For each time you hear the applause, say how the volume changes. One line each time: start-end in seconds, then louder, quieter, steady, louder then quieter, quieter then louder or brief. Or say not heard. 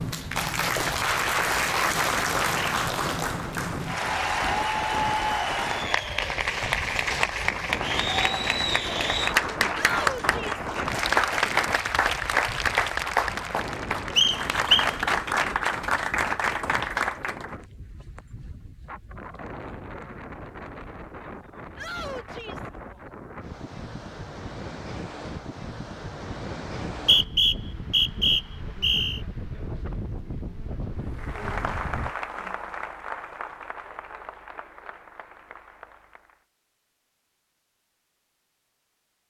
0.0-17.5 steady
31.1-36.5 quieter.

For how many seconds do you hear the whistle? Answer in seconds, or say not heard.
3 s.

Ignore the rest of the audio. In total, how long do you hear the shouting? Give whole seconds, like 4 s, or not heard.
2 s.